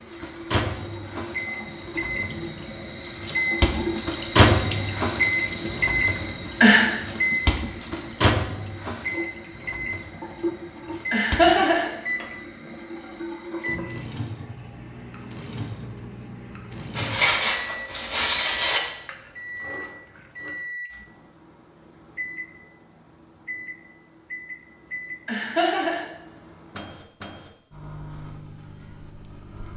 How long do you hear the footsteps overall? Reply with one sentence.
You can't hear the footsteps here.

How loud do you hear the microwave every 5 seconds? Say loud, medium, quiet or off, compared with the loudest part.
loud, loud, medium, quiet, quiet, quiet.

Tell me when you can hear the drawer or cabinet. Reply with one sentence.
You can't hear the drawer or cabinet here.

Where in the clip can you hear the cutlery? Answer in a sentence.
You can hear the cutlery from 16.9 to 18.8 s.